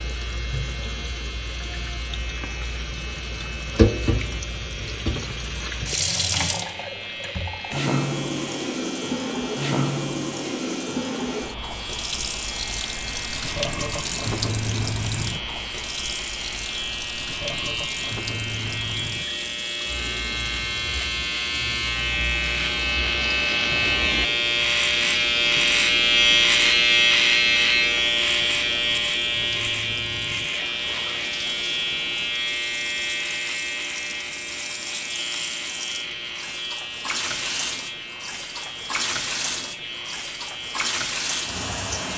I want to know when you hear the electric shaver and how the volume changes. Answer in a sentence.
You can hear the electric shaver from 0.0 to 42.1 s, getting louder then quieter.